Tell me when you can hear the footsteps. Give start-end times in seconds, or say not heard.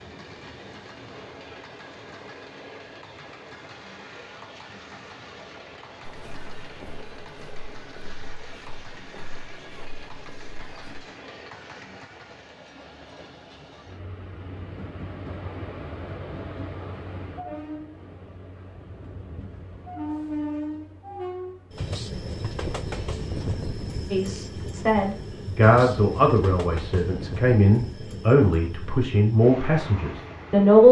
6.0-11.1.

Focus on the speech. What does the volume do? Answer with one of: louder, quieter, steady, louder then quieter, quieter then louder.
steady.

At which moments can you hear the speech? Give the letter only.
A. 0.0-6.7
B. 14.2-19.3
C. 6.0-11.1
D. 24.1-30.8
D.